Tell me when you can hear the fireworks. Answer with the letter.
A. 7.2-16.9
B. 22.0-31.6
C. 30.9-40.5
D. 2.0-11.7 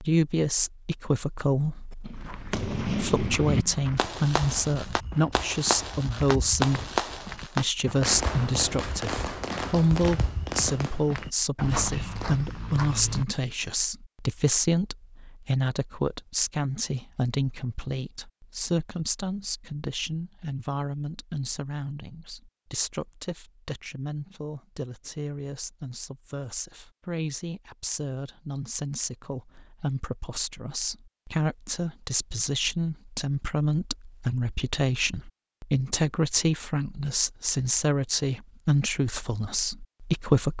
D.